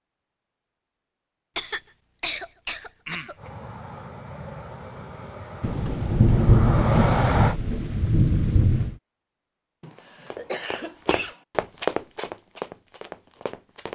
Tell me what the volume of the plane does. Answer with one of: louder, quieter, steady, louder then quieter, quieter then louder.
louder.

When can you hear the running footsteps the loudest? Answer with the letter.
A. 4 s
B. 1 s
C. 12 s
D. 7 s
C.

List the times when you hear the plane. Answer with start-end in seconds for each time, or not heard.
3.4-7.5.